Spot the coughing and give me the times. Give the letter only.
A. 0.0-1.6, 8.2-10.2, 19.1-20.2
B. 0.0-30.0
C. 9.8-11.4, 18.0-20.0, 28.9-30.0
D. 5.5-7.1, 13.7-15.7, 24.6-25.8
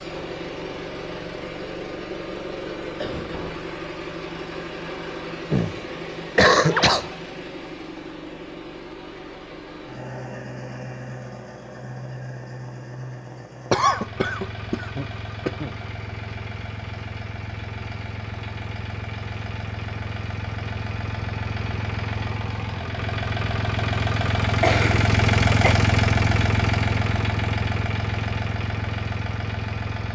D.